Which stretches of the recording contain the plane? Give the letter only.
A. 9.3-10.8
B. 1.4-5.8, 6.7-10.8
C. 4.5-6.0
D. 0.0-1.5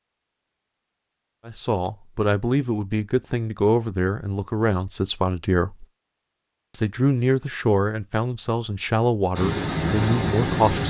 A.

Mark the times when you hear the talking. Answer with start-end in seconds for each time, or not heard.
1.4-5.8, 6.7-10.8.